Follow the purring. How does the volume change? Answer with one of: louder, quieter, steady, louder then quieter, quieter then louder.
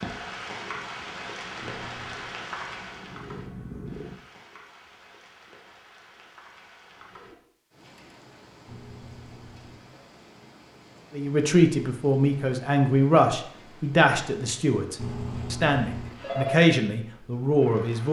louder.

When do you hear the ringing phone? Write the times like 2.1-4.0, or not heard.
1.6-2.4, 8.7-10.1, 14.9-16.6.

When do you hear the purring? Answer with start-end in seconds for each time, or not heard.
0.1-4.2.